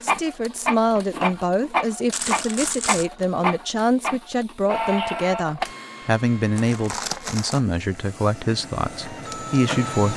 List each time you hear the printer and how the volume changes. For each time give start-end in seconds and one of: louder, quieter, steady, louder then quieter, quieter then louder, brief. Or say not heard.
0.0-10.1 quieter then louder.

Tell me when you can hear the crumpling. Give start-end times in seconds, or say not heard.
2.1-3.1, 6.5-7.6.